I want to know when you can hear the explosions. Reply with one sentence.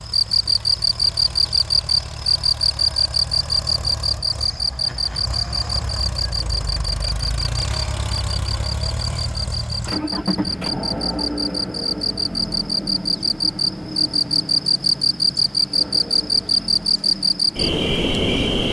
The explosions can't be heard in this clip.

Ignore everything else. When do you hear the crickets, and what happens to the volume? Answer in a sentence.
You can hear the crickets from 0.0 to 18.6 s, getting quieter then louder.